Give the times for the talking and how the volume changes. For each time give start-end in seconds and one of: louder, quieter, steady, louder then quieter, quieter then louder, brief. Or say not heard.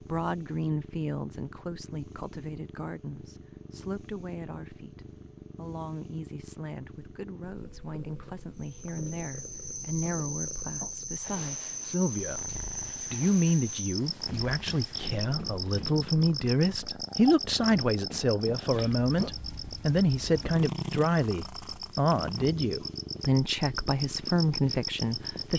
0.0-25.5 louder.